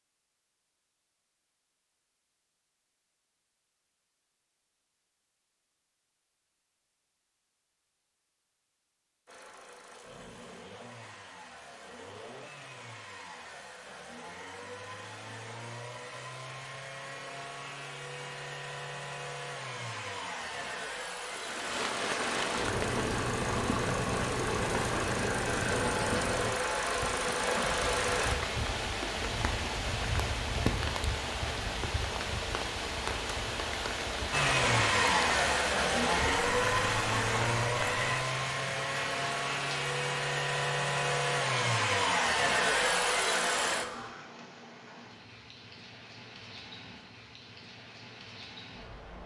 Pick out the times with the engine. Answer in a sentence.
The engine can be heard from 9.2 to 28.4 s and from 34.3 to 44.1 s.